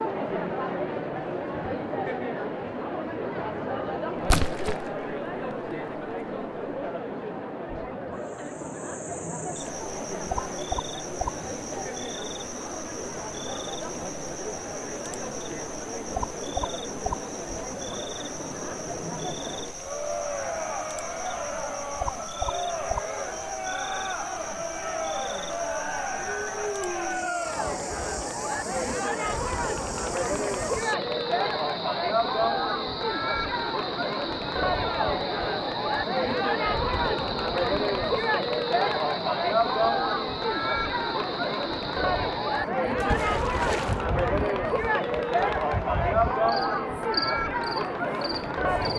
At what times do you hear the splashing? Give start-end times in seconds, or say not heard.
4.2-4.9, 43.0-44.0.